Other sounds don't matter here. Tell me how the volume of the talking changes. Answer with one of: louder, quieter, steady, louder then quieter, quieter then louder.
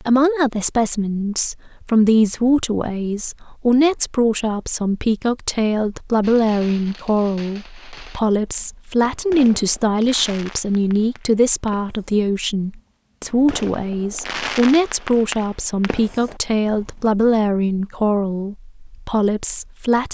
steady.